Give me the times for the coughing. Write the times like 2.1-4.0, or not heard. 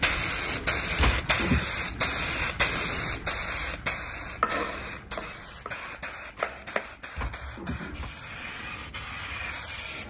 0.9-1.6, 7.2-8.1.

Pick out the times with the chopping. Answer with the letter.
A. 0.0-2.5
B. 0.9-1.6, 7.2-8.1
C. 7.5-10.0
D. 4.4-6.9
D.